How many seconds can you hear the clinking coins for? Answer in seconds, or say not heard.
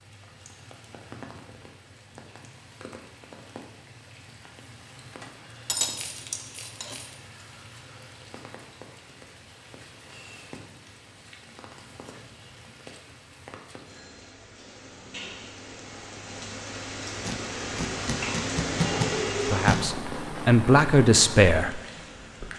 2 s.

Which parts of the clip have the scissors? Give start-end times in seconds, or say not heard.
17.2-19.8.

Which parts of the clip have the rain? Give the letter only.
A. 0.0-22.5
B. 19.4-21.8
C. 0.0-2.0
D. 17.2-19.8
A.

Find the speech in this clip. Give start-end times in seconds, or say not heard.
19.4-21.8.